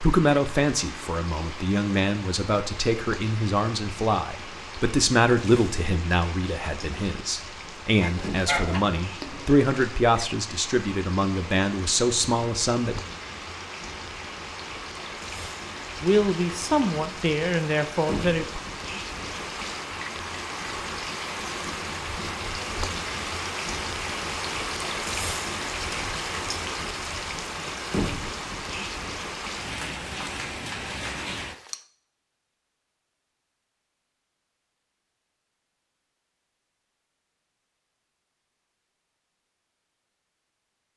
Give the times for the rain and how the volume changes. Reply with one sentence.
You can hear the rain from 0.0 to 31.8 s, getting louder.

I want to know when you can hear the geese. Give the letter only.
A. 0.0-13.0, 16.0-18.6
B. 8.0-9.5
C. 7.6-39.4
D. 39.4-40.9
B.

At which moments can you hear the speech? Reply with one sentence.
The speech can be heard from 0.0 to 13.0 s and from 16.0 to 18.6 s.